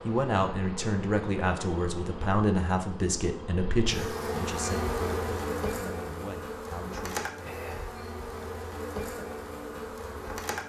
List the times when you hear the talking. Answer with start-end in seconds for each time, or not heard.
0.1-7.3.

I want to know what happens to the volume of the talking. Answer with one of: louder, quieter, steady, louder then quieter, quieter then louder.
quieter.